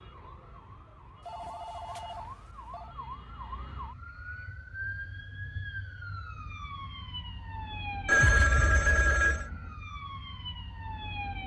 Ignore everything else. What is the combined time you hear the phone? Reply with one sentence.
The phone can be heard for 3 seconds in total.